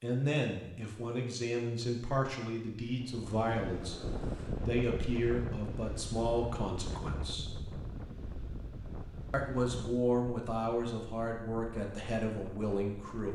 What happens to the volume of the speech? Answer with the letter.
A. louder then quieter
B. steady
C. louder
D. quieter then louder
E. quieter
B.